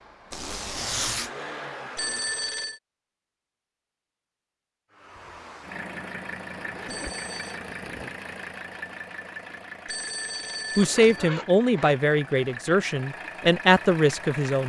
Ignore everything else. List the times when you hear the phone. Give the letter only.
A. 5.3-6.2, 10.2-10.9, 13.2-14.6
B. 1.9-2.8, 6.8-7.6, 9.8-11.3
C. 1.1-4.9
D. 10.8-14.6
B.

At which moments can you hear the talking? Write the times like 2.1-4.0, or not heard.
10.8-14.6.